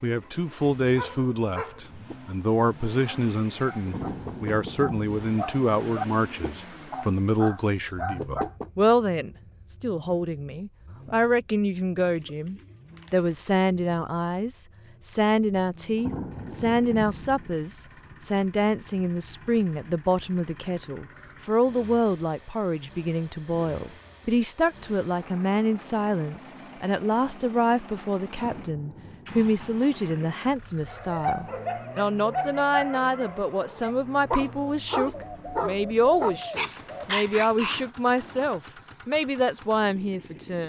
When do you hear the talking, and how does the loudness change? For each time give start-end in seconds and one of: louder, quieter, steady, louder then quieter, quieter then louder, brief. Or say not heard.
0.0-40.6 steady.